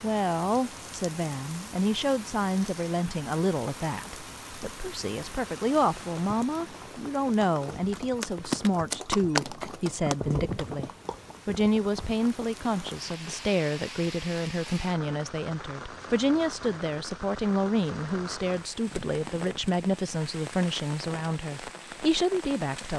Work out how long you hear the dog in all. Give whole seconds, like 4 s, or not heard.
not heard.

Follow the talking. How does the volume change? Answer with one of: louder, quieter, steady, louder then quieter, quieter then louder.
steady.